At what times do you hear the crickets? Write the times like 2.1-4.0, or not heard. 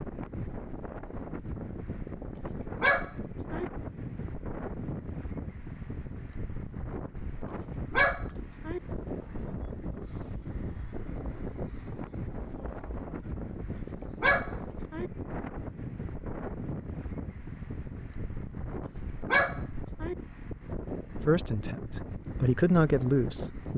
0.0-15.0.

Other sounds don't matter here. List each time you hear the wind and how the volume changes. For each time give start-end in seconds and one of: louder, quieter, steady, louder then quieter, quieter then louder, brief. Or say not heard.
0.0-23.7 steady.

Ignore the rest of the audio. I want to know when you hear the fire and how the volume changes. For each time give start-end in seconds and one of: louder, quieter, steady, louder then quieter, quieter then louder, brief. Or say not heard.
not heard.